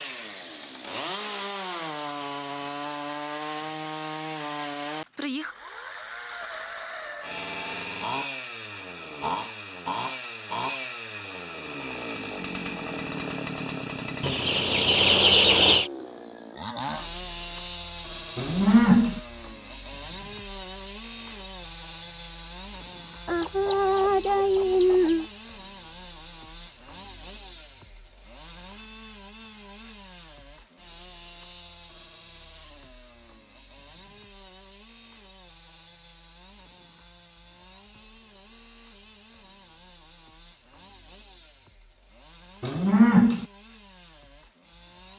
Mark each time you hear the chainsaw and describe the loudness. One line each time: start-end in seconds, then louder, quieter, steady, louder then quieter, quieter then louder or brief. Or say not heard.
0.0-45.1 quieter.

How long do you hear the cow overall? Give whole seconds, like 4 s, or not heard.
2 s.